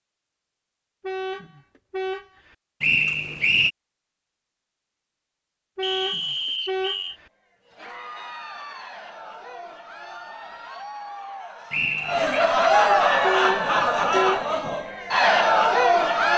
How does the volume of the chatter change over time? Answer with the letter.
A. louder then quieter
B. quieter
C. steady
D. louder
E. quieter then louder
D.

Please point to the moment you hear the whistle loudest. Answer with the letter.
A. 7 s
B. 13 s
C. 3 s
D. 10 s
C.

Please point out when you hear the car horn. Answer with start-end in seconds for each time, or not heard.
1.0-2.5, 5.8-7.3, 13.2-14.4.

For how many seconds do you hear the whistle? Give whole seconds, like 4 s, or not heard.
3 s.